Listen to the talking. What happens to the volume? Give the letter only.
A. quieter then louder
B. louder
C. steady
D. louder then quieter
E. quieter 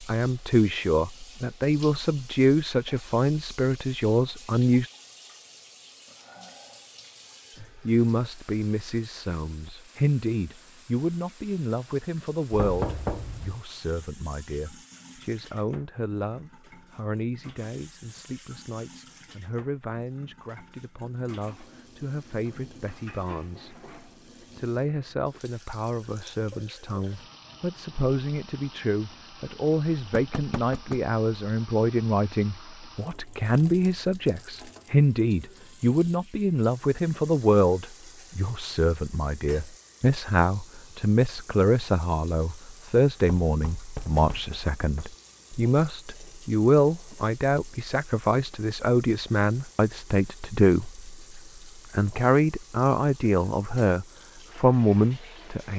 A.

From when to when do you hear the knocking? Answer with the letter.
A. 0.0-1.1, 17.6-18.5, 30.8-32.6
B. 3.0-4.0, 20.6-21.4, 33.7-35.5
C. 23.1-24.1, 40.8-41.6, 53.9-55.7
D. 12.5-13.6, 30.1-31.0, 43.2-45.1
D.